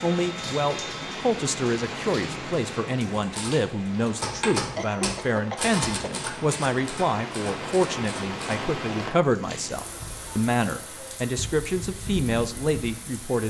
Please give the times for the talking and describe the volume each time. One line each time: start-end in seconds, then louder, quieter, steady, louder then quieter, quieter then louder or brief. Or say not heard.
0.0-13.4 steady.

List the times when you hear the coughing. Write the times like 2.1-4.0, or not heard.
4.5-6.2.